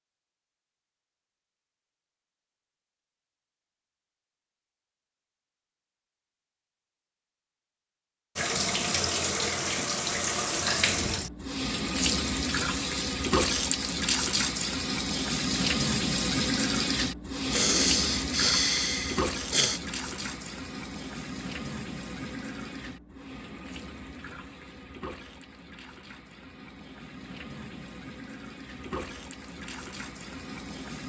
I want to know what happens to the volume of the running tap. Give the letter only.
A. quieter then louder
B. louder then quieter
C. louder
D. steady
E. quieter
E.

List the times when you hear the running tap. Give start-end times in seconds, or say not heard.
8.3-31.0.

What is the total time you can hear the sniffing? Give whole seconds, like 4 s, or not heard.
2 s.